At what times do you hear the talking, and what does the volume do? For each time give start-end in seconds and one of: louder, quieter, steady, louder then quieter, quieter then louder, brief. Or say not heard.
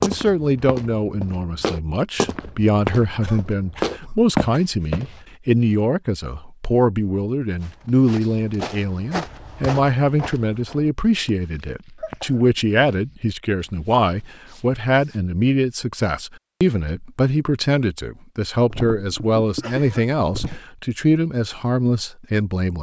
0.0-22.7 steady.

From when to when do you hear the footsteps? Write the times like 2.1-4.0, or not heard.
0.0-5.2, 7.6-15.2.